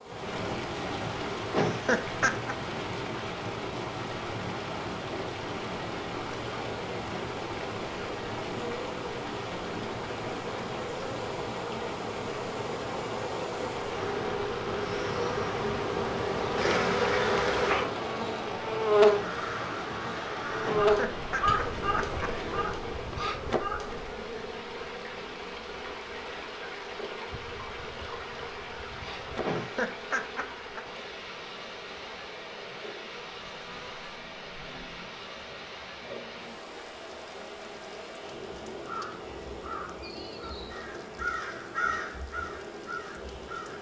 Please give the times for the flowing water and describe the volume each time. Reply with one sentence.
The flowing water can be heard from 0.0 to 43.7 s, getting quieter.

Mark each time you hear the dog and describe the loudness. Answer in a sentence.
The dog can't be heard in this clip.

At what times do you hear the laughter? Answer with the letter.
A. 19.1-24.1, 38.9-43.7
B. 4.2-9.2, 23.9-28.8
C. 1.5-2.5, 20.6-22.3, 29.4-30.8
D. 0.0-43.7
C.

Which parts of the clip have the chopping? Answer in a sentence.
The chopping can't be heard in this clip.